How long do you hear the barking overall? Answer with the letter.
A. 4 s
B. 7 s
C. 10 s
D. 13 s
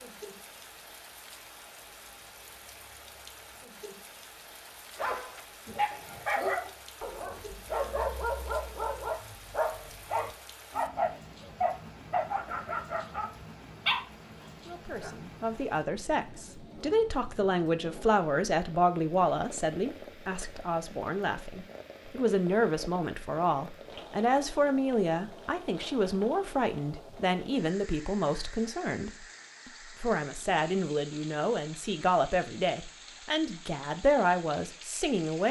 C.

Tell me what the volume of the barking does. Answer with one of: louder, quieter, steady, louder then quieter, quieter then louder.
steady.